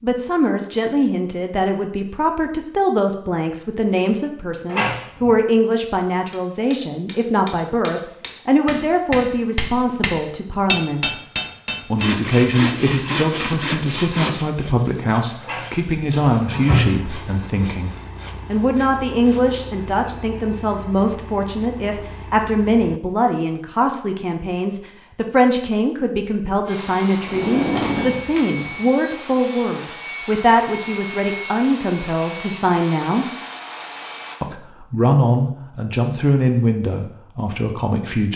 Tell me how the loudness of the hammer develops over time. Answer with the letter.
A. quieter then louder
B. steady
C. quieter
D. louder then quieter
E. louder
E.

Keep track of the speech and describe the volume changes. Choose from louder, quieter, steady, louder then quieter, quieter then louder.
steady.